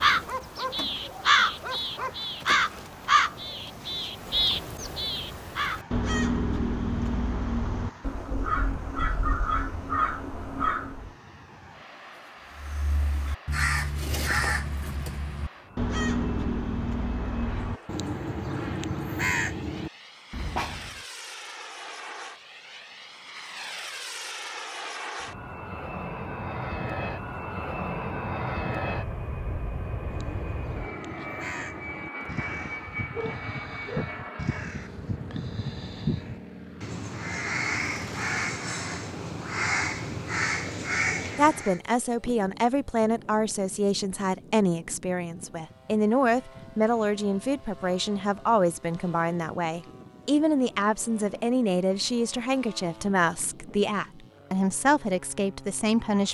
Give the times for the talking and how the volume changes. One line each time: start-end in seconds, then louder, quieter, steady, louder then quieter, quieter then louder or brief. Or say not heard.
41.4-56.2 steady.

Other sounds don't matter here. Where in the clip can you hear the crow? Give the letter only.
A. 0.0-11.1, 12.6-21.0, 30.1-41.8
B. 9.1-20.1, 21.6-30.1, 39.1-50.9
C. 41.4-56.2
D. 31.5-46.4
A.